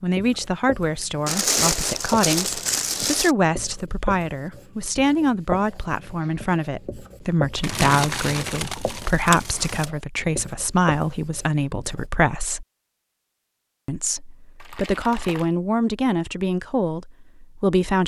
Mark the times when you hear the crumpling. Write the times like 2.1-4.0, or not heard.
1.2-3.4, 7.6-9.9, 14.6-15.5.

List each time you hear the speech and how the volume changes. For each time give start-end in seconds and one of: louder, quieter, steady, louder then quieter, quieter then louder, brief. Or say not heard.
0.0-12.7 steady
13.8-18.0 louder then quieter.